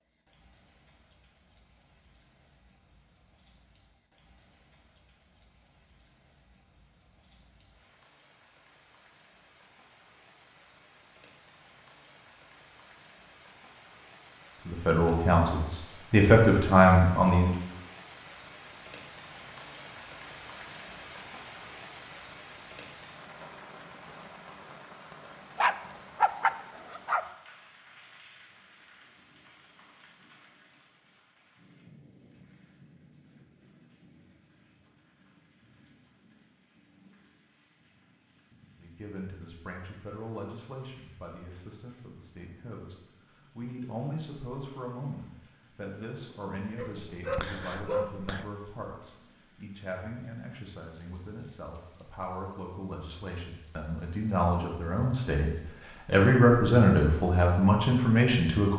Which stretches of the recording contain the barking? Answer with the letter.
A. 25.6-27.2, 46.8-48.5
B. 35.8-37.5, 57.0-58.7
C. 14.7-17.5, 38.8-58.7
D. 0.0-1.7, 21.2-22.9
A.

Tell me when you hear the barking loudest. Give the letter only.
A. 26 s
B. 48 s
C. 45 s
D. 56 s
A.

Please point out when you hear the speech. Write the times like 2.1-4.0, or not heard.
14.7-17.5, 38.8-58.7.